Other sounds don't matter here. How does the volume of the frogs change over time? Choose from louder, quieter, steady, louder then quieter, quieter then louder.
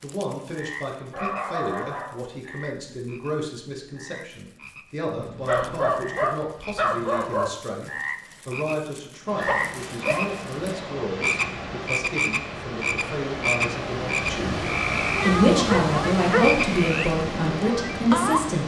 louder.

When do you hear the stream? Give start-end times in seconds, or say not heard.
9.2-18.6.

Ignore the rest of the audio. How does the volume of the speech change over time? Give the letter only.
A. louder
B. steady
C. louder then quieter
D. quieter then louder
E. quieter
A.